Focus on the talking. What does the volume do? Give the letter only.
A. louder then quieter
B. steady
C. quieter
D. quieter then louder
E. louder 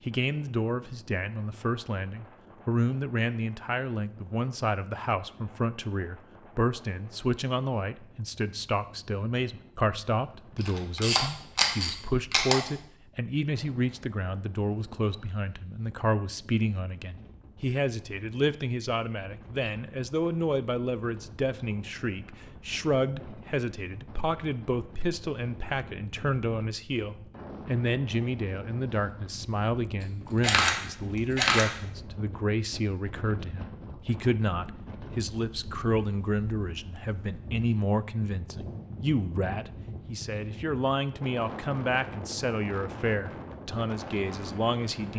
B.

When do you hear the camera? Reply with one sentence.
You can hear the camera from 10.6 to 12.6 s and from 30.4 to 31.7 s.